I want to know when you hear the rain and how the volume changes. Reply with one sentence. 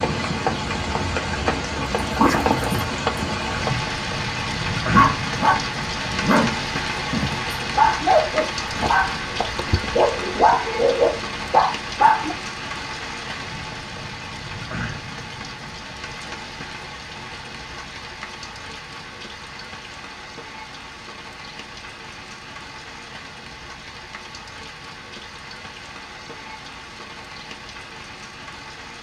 The rain can be heard from 0.0 to 28.9 s, getting quieter.